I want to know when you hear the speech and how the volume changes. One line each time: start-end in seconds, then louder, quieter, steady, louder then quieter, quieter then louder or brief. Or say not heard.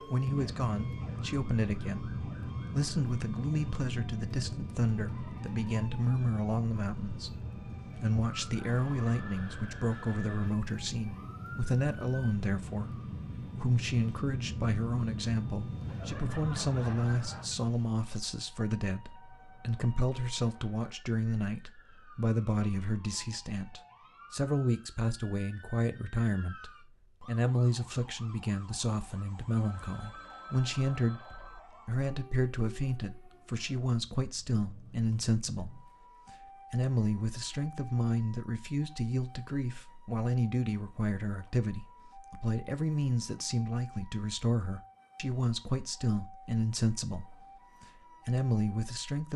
0.1-49.3 steady.